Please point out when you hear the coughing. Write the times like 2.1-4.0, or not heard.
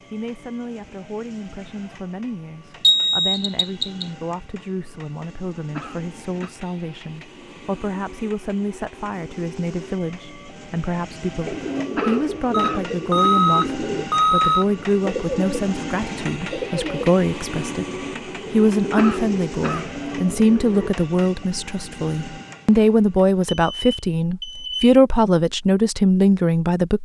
5.7-6.5, 11.9-12.8, 18.9-19.9.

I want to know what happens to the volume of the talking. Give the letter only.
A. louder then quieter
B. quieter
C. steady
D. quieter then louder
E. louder
E.